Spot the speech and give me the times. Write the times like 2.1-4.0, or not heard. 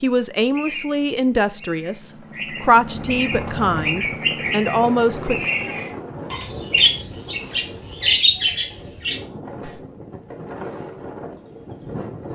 0.0-5.5.